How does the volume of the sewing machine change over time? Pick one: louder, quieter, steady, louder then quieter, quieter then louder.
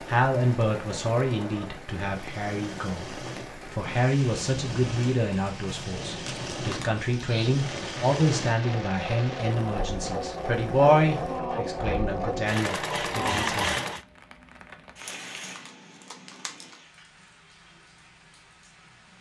louder.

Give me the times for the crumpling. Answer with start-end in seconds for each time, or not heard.
6.2-7.0, 15.1-16.8.